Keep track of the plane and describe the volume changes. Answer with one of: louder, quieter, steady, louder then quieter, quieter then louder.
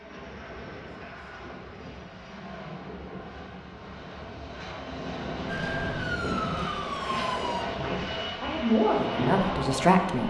louder.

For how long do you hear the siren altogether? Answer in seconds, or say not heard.
2 s.